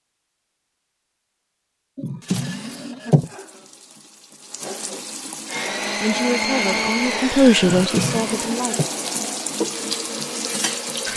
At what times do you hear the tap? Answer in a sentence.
The tap can be heard from 3.1 to 11.1 s.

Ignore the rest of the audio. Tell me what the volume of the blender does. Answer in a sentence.
The loudness of the blender goes down.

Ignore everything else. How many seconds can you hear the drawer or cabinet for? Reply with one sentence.
You can hear the drawer or cabinet for 3 seconds altogether.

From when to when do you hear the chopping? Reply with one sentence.
The chopping can't be heard in this clip.